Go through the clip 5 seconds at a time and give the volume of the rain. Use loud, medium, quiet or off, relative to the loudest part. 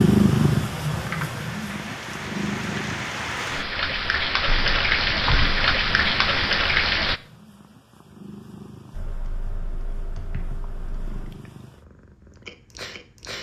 medium, loud, off.